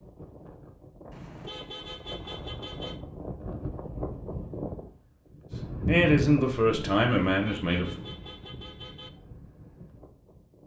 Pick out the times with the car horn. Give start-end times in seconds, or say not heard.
1.1-3.0, 7.3-9.1.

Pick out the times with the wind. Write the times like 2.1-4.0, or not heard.
0.0-10.6.